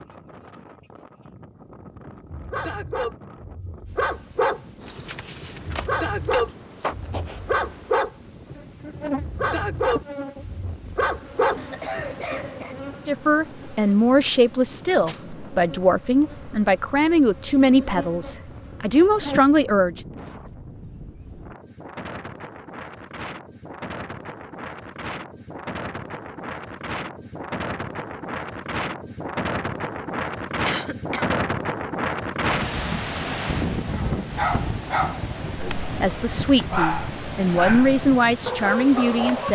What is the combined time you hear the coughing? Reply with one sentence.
The coughing can be heard for 2 seconds in total.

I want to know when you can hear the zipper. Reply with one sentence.
You can't hear the zipper here.